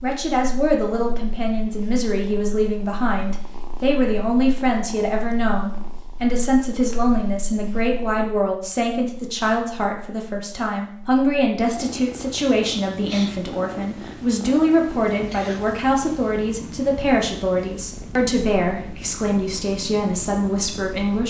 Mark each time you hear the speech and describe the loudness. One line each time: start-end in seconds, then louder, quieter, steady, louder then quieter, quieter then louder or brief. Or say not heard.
0.0-21.2 steady.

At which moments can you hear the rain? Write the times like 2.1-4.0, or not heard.
not heard.